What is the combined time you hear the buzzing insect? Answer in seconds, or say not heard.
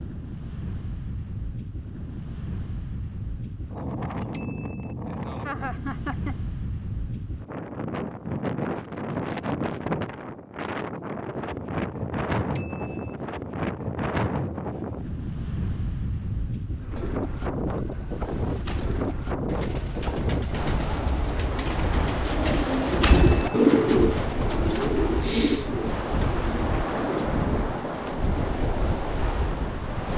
not heard.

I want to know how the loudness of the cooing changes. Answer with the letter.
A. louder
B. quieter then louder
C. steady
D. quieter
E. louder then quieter
E.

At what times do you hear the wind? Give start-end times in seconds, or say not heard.
0.0-30.1.